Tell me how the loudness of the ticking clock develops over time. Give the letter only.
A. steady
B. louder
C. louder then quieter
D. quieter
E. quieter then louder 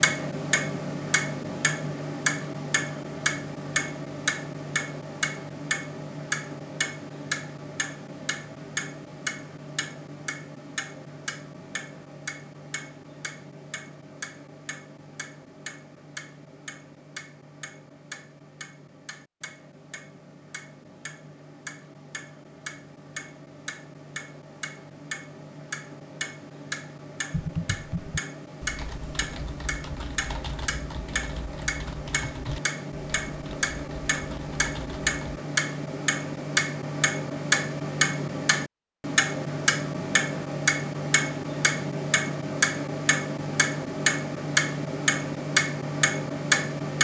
E.